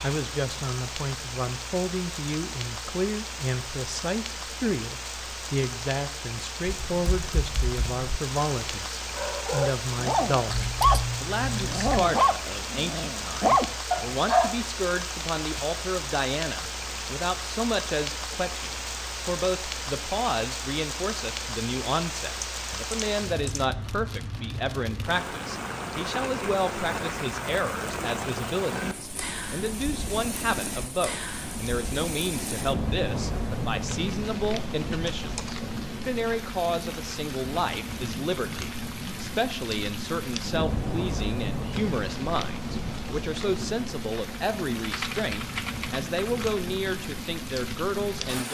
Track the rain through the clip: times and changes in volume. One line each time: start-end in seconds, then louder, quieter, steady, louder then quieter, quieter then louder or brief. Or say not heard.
0.0-48.4 steady.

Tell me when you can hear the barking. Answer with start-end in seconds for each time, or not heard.
9.2-14.6.